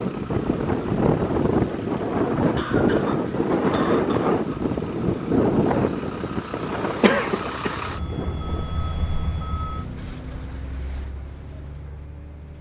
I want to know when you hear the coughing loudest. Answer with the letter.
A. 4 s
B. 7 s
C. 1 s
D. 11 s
B.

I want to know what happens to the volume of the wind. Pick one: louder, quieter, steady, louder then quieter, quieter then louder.
quieter.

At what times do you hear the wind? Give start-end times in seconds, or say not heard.
0.0-8.7.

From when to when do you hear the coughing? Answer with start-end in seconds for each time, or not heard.
2.5-4.5, 7.0-7.8.